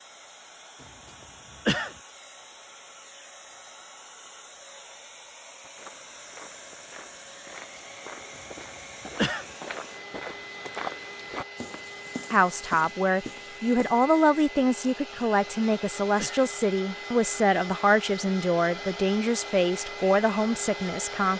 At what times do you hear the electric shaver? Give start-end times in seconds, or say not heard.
not heard.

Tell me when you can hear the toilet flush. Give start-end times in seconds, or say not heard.
not heard.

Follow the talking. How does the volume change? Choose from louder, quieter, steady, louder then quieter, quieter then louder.
steady.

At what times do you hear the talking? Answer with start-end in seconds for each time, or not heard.
12.3-21.3.